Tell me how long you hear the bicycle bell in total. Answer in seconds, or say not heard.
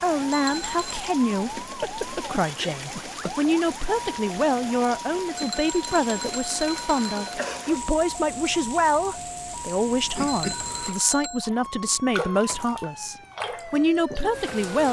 4 s.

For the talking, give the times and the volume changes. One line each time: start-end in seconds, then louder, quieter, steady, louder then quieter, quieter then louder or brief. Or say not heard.
0.0-14.8 steady.